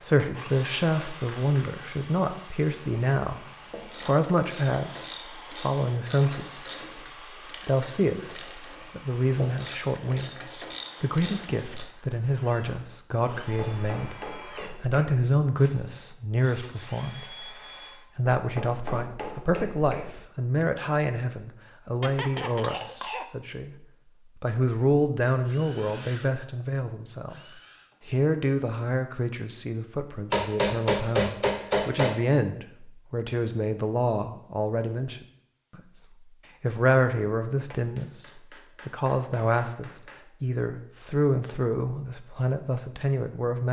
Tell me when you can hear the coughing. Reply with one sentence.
The coughing can be heard from 22.0 to 23.3 s.